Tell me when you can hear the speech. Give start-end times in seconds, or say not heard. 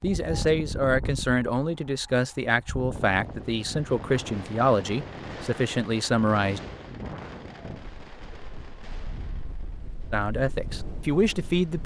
0.0-6.6, 10.1-11.8.